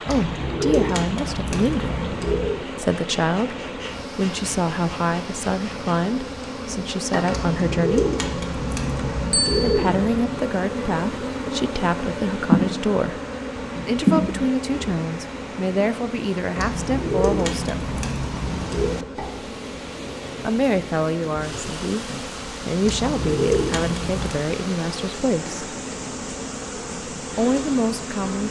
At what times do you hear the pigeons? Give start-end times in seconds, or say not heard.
0.1-2.6, 7.2-10.2, 16.6-18.9, 22.8-24.4.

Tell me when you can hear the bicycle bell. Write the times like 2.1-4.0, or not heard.
9.3-9.8.